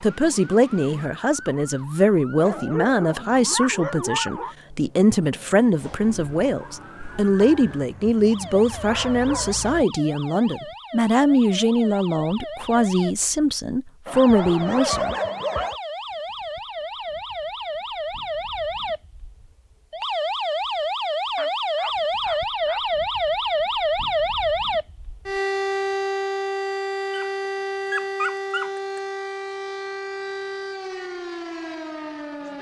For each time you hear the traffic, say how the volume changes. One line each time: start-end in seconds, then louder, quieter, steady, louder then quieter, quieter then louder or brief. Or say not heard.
not heard.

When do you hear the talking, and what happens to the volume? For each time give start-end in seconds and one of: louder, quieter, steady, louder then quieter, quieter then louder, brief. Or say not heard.
0.0-15.2 steady.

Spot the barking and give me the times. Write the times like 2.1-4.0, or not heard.
2.4-4.5, 7.4-9.8, 14.1-15.8, 21.4-22.8, 27.1-29.0.